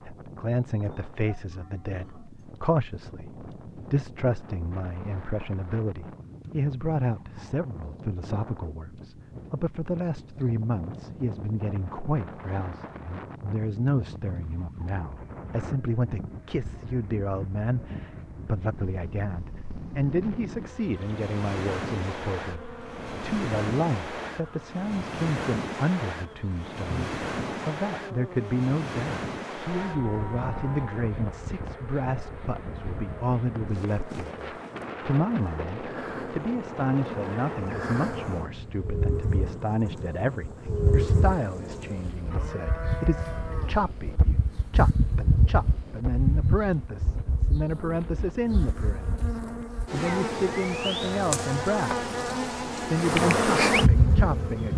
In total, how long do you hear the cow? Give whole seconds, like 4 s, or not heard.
5 s.